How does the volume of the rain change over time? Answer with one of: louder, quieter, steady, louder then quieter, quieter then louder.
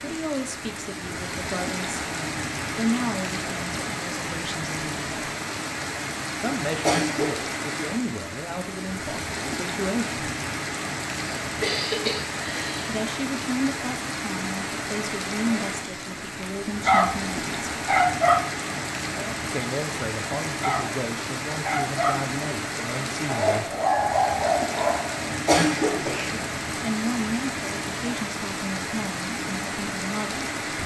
steady.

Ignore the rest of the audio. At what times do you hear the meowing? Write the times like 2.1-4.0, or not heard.
not heard.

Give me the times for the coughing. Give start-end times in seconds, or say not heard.
6.7-7.5, 11.4-12.8, 25.2-26.4.